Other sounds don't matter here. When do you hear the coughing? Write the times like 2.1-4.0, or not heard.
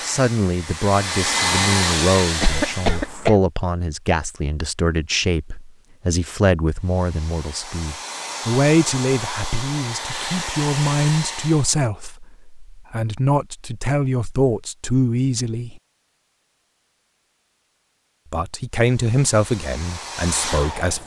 2.4-3.4.